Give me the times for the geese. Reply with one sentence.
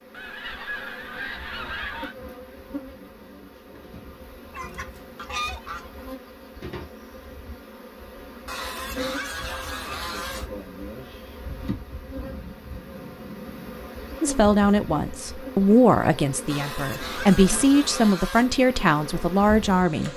You can hear the geese from 0.1 to 2.1 s, from 4.5 to 6.0 s, from 8.4 to 10.5 s, from 12.0 to 13.9 s and from 16.5 to 18.5 s.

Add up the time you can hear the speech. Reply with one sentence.
You can hear the speech for 6 seconds altogether.